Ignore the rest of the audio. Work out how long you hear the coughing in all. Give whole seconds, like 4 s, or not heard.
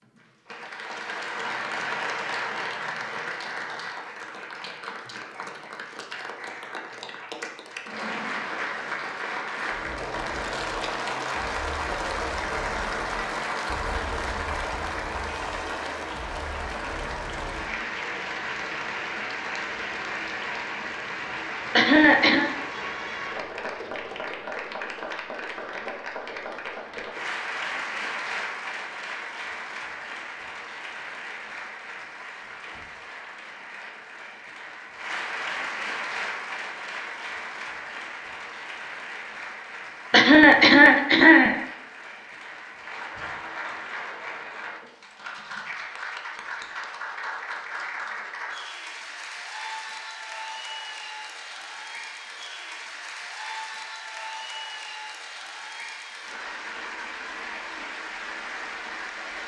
2 s.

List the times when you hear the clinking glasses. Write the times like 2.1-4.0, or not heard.
not heard.